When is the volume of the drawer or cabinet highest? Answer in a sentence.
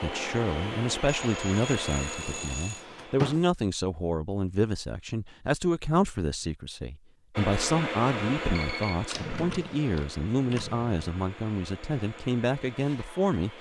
The loudest moment of the drawer or cabinet is at 3 seconds.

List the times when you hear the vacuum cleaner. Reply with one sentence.
The vacuum cleaner can be heard from 0.0 to 3.4 s and from 7.3 to 13.5 s.